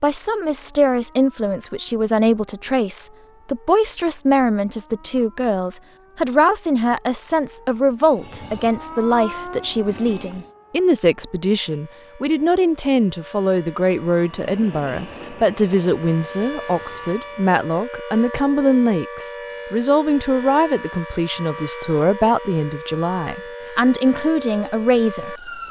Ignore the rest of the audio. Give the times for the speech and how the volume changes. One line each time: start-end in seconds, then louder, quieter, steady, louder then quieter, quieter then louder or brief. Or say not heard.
0.0-25.6 steady.